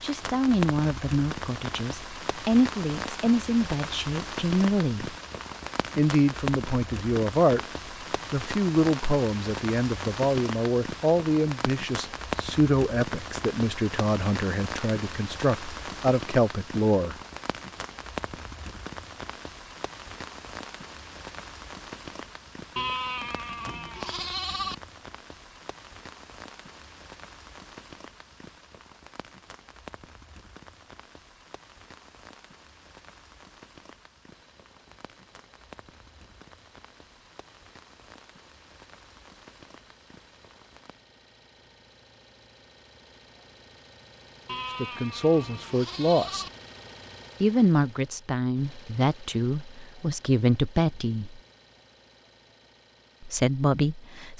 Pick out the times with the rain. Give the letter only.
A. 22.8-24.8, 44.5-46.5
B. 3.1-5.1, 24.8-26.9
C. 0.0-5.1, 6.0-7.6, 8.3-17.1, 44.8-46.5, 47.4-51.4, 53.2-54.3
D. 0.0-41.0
D.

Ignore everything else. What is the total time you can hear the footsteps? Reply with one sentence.
The footsteps can't be heard in this clip.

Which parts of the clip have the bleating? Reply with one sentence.
You can hear the bleating from 22.8 to 24.8 s and from 44.5 to 46.5 s.